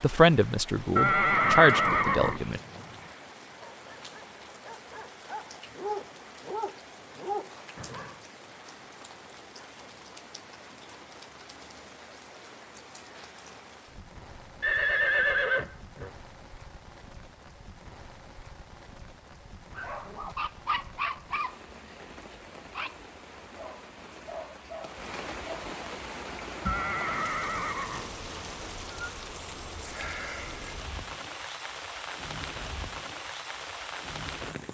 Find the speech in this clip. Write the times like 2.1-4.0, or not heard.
0.0-2.6.